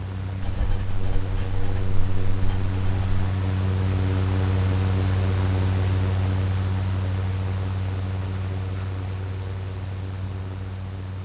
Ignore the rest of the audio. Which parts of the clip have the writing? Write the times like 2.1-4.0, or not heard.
0.4-3.2, 8.2-9.2.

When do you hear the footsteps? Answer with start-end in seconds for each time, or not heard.
not heard.